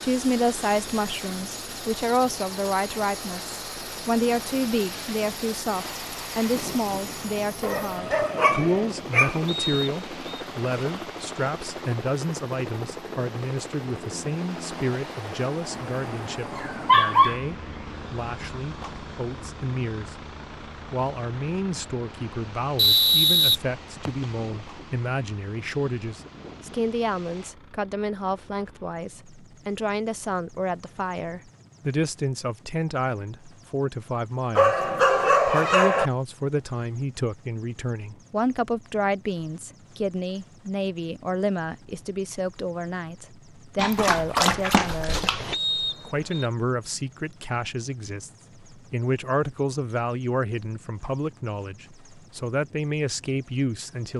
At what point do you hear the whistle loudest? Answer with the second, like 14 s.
23 s.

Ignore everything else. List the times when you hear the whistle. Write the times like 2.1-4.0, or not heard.
9.4-10.2, 22.8-24.2, 45.5-46.5.